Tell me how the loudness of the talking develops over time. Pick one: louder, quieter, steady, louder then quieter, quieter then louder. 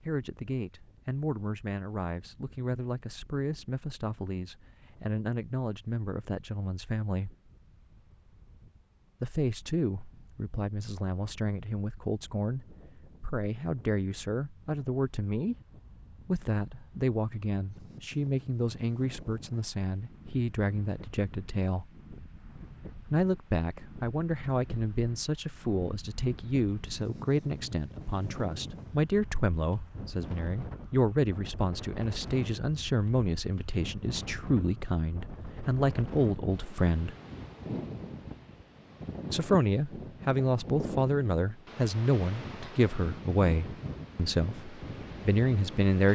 louder.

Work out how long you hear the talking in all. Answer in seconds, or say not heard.
40 s.